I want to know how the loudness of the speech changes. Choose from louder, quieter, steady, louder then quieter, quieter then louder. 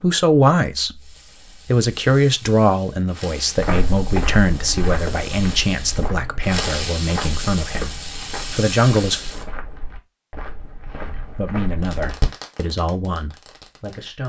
quieter.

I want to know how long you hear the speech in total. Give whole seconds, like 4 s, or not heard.
12 s.